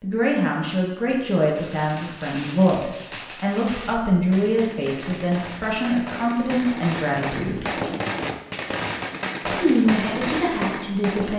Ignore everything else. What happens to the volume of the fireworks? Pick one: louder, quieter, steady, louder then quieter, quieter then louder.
louder.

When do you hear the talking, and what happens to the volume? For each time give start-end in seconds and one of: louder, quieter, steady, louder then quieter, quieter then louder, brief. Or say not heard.
0.0-7.7 steady
9.4-11.3 brief.